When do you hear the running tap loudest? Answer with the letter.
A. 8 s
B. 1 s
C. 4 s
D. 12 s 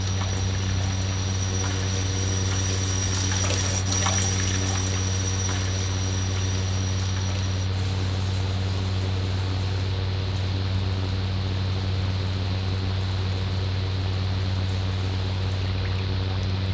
C.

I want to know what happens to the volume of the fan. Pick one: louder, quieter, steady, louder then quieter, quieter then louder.
steady.